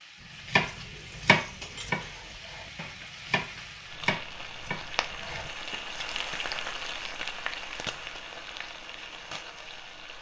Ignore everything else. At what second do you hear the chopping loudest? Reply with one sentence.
The volume of the chopping peaks at 1 second.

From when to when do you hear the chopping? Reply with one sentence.
The chopping can be heard from 0.2 to 5.8 s.